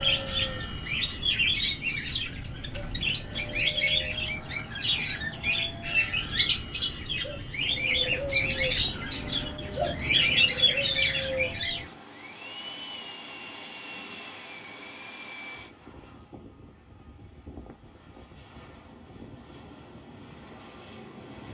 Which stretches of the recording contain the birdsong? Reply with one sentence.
The birdsong can be heard from 0.0 to 11.8 s.